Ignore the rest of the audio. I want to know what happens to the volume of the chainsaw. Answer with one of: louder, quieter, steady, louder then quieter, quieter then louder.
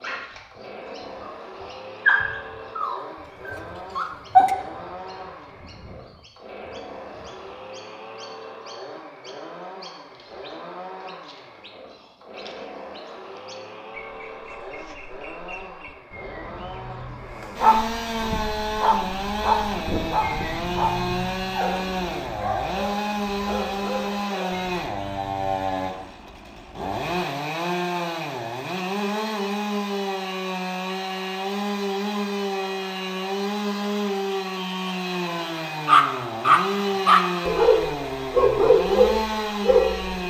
louder.